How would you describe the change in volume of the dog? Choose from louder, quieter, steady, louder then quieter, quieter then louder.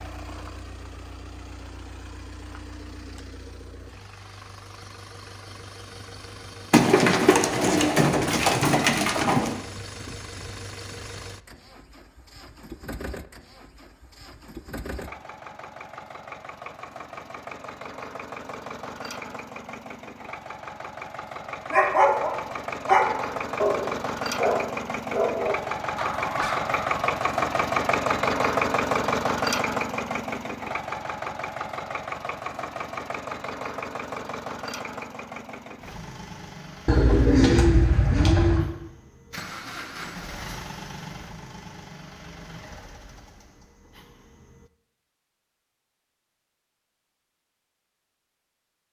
quieter.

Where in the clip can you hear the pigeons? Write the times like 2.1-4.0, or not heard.
6.7-9.6, 36.9-38.7.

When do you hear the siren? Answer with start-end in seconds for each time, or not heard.
not heard.